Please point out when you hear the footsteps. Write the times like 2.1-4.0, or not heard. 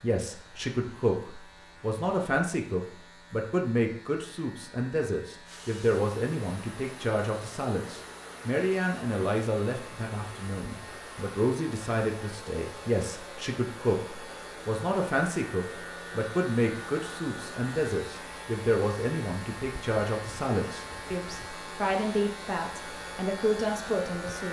not heard.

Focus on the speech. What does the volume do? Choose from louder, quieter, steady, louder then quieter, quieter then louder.
steady.